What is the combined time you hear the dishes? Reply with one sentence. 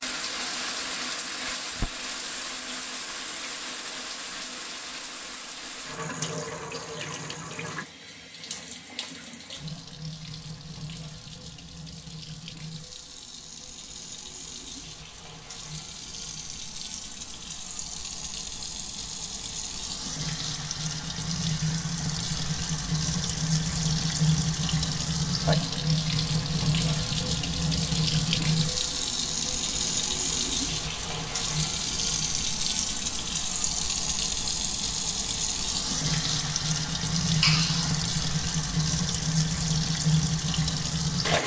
The dishes can't be heard in this clip.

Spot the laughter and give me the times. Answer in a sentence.
You can hear the laughter from 37.4 to 38.0 s.